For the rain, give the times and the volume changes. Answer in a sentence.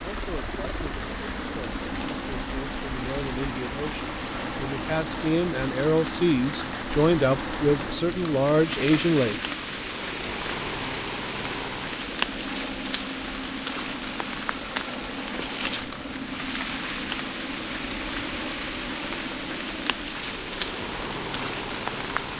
The rain can be heard from 0.0 to 22.3 s, at a steady volume.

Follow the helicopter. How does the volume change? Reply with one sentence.
The volume of the helicopter stays about the same.